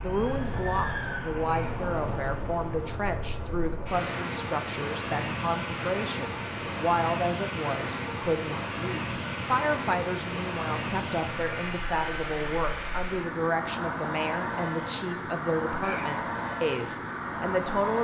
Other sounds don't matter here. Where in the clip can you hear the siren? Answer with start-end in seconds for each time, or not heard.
0.0-1.5.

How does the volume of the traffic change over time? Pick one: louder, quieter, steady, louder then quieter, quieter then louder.
steady.